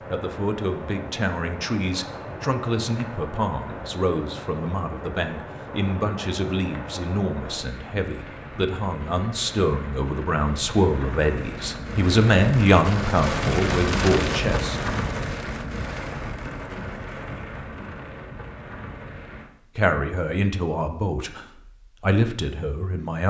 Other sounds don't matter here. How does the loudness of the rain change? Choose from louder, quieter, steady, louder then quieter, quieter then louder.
louder then quieter.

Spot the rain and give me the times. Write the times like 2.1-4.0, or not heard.
0.0-19.5.